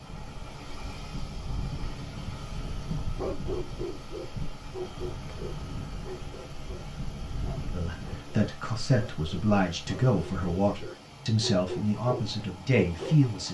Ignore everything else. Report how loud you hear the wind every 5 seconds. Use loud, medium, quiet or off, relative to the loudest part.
loud, loud, off.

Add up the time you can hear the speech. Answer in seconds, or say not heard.
6 s.